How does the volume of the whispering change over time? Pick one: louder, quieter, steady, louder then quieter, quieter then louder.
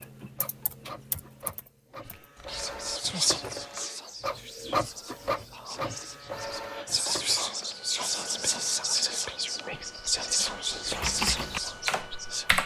quieter then louder.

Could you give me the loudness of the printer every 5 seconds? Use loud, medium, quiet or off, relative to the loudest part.
loud, loud, medium.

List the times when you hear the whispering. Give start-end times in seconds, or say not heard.
2.5-12.4.